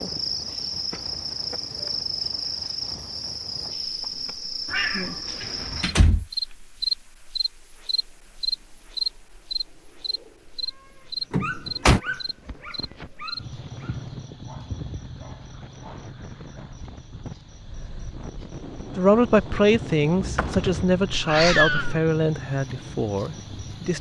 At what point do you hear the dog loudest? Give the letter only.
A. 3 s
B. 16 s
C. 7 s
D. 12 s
D.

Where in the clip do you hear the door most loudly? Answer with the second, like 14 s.
12 s.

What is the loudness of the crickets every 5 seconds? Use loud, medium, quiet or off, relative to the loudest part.
loud, loud, medium, quiet, medium.